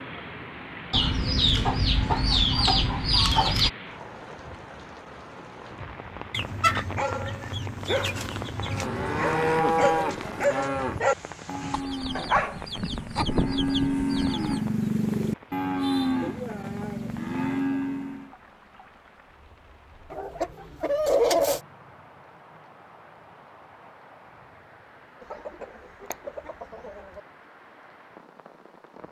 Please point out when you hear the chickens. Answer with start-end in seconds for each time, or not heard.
0.9-3.7, 6.3-8.8, 11.7-14.6, 20.1-21.6, 25.2-27.2.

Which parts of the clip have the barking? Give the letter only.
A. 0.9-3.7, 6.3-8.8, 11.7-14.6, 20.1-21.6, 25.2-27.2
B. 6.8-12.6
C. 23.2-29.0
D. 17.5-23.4
B.